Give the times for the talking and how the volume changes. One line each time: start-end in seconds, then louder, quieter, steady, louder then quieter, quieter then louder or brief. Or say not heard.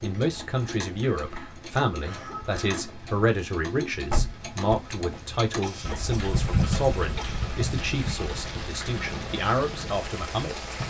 0.0-10.8 steady.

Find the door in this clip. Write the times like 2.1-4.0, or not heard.
4.1-5.2.